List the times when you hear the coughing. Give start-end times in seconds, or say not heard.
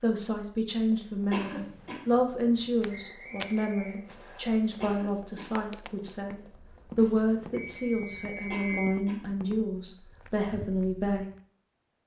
1.3-2.0, 4.8-5.5, 8.5-9.2.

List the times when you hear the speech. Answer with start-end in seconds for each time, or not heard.
0.0-11.2.